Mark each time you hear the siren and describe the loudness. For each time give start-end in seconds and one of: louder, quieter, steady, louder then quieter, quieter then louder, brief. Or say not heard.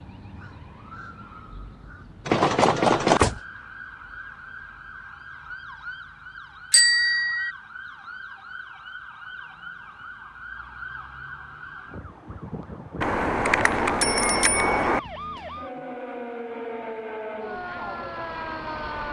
0.0-19.0 louder.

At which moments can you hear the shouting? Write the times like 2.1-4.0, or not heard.
not heard.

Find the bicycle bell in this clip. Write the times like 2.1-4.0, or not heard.
2.2-3.4, 6.7-7.5, 13.0-15.0.